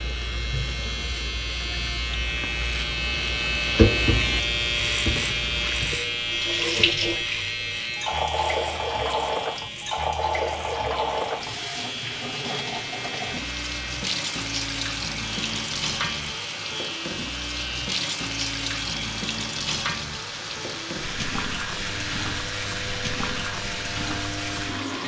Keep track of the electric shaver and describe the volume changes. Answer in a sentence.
The volume of the electric shaver goes down.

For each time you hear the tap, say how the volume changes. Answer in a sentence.
The tap can be heard from 0.0 to 25.0 s, at a steady volume.